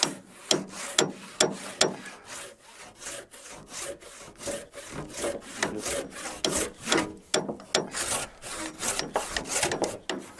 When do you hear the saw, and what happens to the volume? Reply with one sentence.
The saw can be heard from 0.0 to 10.3 s, getting louder.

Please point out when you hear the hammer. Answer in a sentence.
The hammer can be heard from 0.0 to 2.1 s and from 5.5 to 10.2 s.